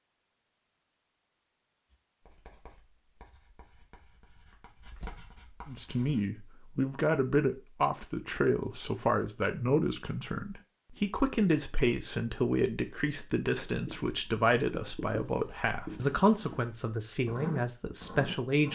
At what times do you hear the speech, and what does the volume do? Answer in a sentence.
You can hear the speech from 5.7 to 18.6 s, at a steady volume.